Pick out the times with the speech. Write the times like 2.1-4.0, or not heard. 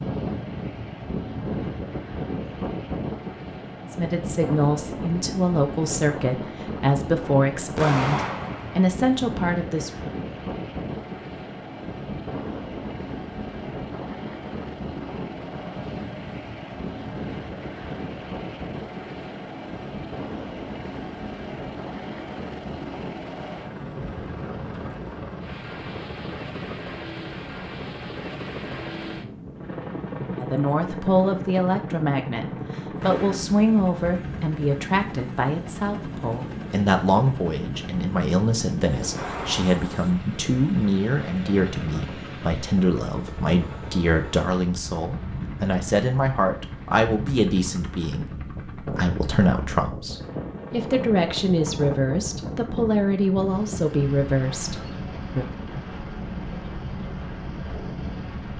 3.8-9.9, 30.4-55.5.